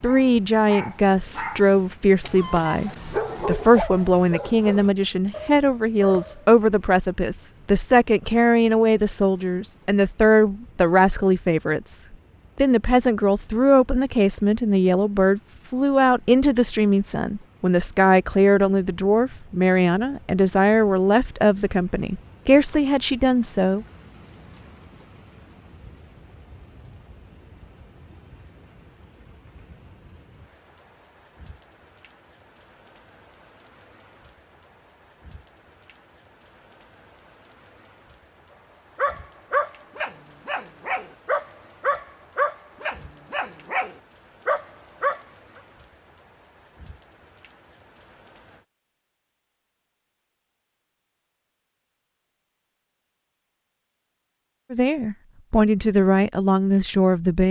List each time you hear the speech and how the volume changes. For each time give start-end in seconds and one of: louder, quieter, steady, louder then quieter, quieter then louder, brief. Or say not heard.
0.0-23.9 steady
54.7-57.4 brief.